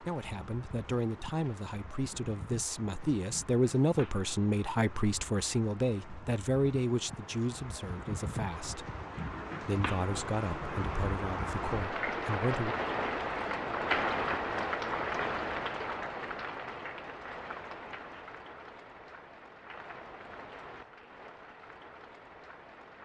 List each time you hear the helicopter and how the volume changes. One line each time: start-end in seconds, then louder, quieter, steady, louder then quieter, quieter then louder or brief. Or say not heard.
not heard.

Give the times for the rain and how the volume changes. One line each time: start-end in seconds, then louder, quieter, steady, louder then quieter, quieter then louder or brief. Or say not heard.
0.0-23.0 louder then quieter.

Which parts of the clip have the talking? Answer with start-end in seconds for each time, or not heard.
0.0-8.8, 9.6-12.8.